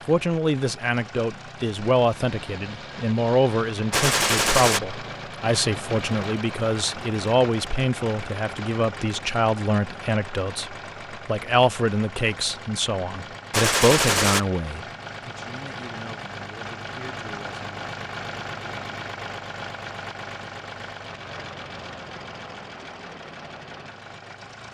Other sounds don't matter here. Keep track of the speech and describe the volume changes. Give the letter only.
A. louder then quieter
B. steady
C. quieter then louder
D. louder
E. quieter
E.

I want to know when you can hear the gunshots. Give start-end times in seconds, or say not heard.
3.9-4.8, 13.5-14.4.